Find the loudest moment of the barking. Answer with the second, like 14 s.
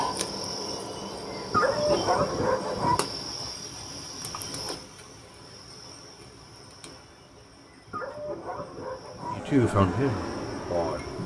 2 s.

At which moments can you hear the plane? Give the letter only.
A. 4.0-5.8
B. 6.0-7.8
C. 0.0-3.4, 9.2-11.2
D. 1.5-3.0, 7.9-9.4
C.